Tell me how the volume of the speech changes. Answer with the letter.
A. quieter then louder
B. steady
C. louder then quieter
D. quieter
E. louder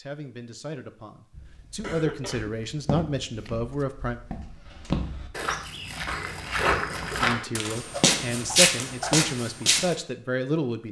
E.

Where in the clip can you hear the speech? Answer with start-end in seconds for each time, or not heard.
0.0-4.2, 7.2-10.8.